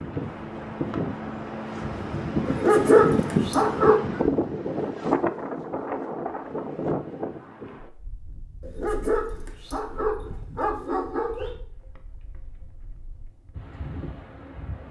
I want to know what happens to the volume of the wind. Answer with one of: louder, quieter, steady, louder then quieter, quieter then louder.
quieter then louder.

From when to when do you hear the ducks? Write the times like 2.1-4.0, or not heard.
not heard.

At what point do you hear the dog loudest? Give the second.
3 s.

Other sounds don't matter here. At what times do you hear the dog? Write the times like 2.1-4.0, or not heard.
2.5-4.0, 8.6-11.5.